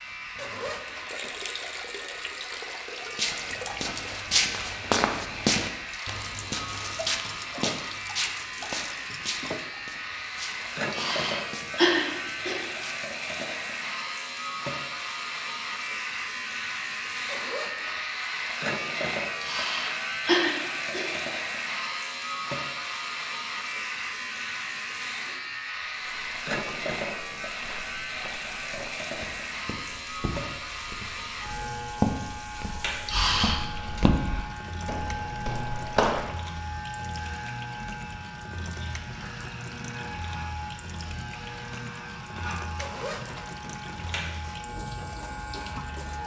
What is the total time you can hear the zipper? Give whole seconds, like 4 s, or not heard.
4 s.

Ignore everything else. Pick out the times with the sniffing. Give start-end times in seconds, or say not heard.
10.9-12.6, 19.4-21.1, 33.0-33.6.